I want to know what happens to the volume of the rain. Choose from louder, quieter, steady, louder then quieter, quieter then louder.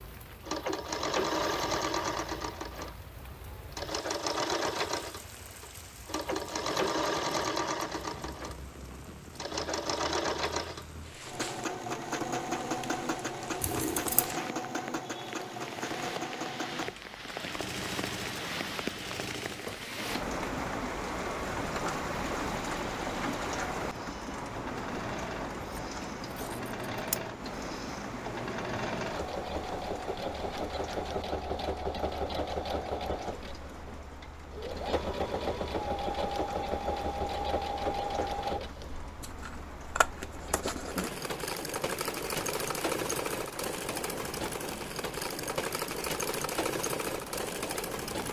louder then quieter.